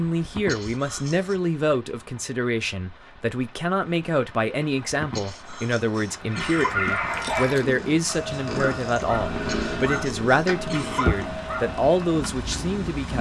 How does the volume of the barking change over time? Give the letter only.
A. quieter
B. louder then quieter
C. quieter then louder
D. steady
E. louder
A.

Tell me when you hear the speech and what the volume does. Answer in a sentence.
The speech can be heard from 0.0 to 13.1 s, at a steady volume.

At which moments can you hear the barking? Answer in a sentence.
You can hear the barking from 6.2 to 12.2 s.